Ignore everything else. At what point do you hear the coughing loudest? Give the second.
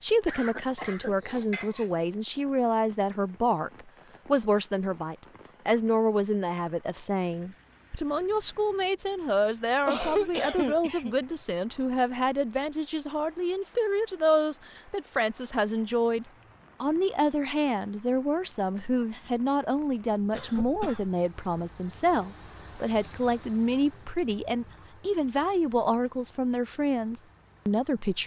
10 s.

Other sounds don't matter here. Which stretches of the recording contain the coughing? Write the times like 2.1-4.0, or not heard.
0.2-1.9, 9.8-11.2, 20.3-21.1.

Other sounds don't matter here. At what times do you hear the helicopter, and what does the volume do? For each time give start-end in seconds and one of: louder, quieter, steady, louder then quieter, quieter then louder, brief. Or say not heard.
not heard.